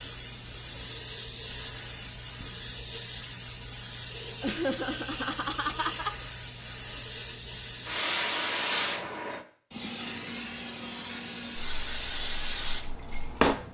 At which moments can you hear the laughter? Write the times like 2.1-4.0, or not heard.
4.4-6.2.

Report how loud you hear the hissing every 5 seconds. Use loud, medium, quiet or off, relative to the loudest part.
medium, loud, loud.